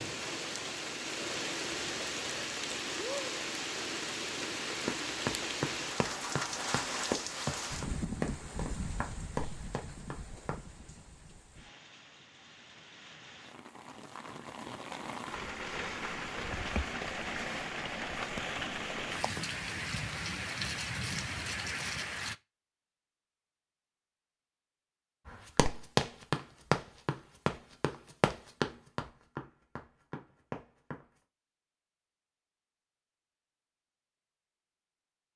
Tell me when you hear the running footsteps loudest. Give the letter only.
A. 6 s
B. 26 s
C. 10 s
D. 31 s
B.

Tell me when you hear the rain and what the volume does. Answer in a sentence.
The rain can be heard from 0.0 to 22.4 s, getting quieter then louder.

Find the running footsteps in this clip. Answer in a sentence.
The running footsteps can be heard from 4.8 to 10.6 s and from 25.2 to 31.2 s.